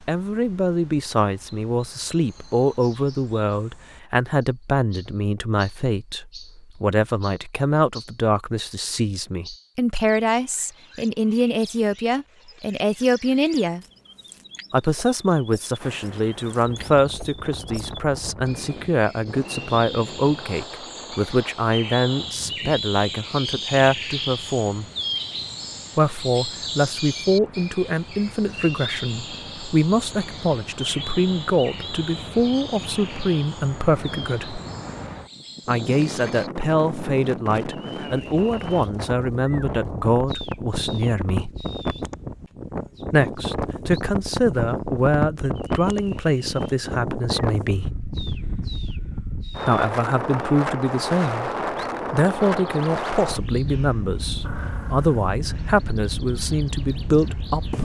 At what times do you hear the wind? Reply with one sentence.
You can hear the wind from 15.8 to 57.7 s.